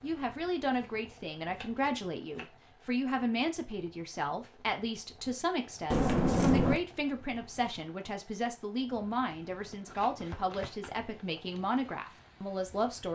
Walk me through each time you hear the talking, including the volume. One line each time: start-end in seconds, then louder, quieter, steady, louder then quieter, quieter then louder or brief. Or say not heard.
0.0-13.1 steady.